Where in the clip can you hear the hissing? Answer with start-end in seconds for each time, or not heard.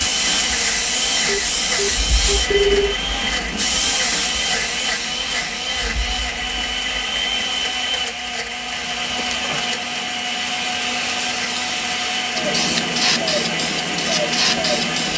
0.0-15.1.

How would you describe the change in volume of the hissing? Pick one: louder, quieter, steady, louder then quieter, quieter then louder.
quieter then louder.